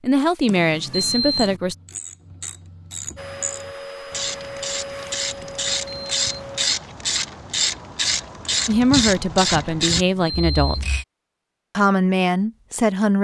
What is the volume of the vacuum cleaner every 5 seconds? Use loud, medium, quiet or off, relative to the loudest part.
loud, loud, off.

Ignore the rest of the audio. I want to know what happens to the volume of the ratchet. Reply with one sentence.
The loudness of the ratchet goes up.